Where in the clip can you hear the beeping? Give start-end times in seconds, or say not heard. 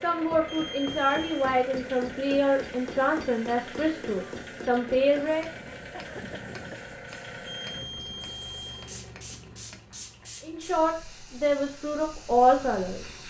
0.5-1.4, 7.5-8.8.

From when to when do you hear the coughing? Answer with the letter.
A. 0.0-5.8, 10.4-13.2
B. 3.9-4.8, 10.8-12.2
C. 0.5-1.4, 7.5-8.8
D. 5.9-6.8
D.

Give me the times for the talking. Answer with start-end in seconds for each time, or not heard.
0.0-5.8, 10.4-13.2.